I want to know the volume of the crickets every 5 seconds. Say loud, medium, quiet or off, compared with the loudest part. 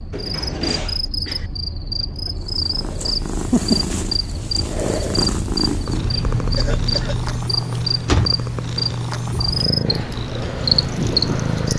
medium, loud, loud.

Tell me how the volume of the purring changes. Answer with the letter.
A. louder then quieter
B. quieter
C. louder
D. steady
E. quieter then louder
D.